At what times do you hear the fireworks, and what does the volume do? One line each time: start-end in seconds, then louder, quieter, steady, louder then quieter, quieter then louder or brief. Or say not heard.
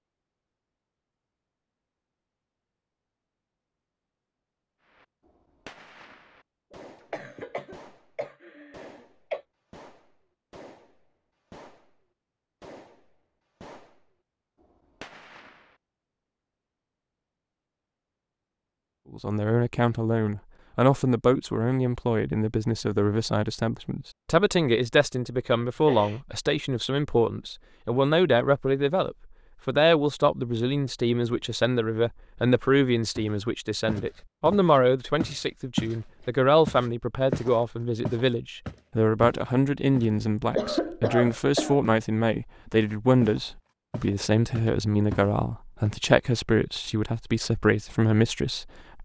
4.8-15.8 steady.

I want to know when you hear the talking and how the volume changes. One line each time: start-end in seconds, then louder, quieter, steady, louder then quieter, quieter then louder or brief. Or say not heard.
19.1-49.0 steady.